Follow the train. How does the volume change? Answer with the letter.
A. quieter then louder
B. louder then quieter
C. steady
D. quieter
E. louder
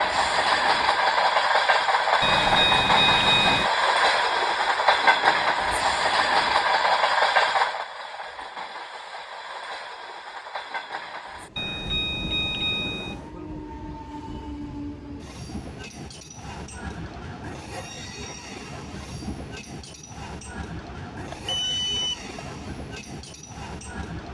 D.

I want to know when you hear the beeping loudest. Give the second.
3 s.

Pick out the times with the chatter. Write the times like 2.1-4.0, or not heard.
not heard.